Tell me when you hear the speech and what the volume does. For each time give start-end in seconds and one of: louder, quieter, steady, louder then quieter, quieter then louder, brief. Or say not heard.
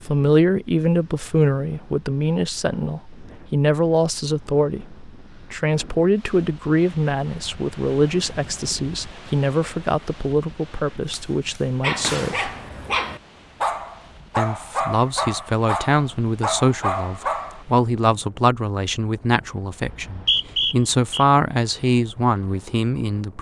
0.1-12.5 steady
14.3-23.3 steady.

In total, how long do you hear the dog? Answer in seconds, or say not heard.
6 s.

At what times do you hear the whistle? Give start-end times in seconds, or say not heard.
19.9-21.2.